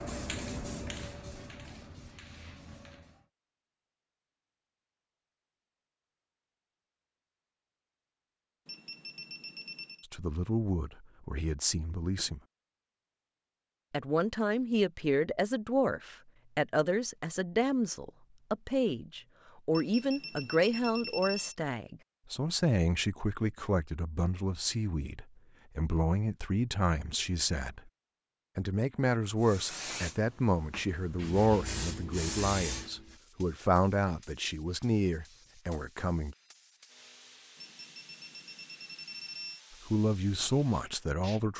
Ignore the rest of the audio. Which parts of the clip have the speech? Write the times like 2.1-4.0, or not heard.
10.1-12.4, 13.9-27.9, 28.6-36.4, 39.9-41.5.